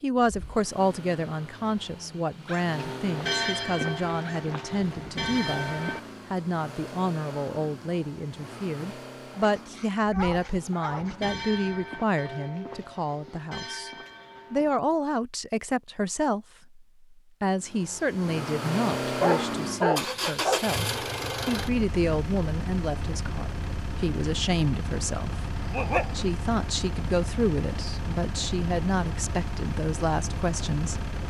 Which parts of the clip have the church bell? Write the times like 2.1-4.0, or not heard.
2.7-6.0, 10.8-14.8.